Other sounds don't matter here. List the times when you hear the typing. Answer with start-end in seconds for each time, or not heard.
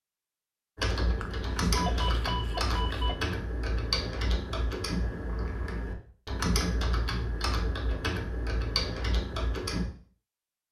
0.8-9.8.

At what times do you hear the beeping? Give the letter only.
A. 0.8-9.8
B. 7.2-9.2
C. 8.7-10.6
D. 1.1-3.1
D.